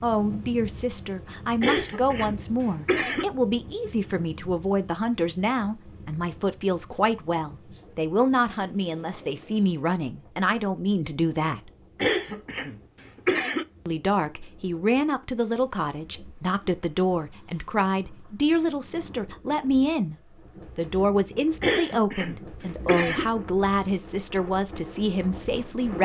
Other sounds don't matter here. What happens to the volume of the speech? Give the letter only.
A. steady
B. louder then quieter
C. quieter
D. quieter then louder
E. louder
A.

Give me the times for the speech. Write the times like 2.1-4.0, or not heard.
0.0-11.7, 13.8-20.1, 20.8-26.0.